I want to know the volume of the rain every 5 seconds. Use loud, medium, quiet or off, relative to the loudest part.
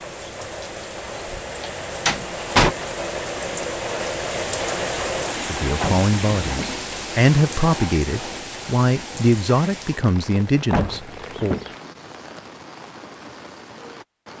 loud, loud, medium.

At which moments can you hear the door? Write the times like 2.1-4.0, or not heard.
0.2-2.8, 5.8-6.8, 10.7-11.8.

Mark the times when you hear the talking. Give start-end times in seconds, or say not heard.
5.5-11.6.